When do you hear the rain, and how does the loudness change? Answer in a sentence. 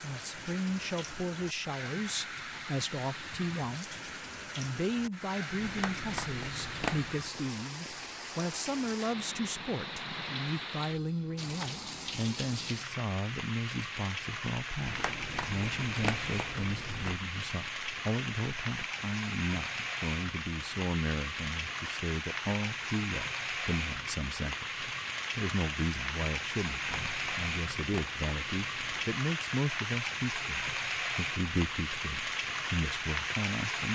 The rain can be heard from 0.0 to 33.9 s, getting louder.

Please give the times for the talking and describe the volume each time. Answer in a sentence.
You can hear the talking from 0.0 to 33.9 s, at a steady volume.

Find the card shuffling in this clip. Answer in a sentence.
You can hear the card shuffling from 5.5 to 7.2 s, from 14.8 to 17.2 s and from 26.6 to 29.1 s.